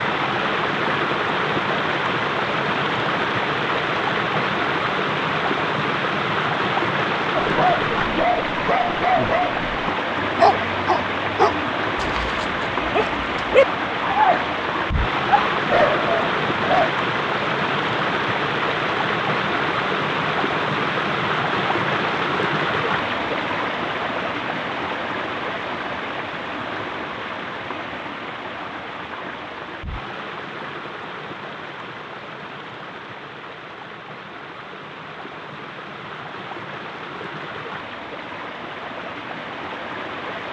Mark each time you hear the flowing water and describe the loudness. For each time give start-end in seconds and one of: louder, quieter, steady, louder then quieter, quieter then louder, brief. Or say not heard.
0.0-40.4 quieter.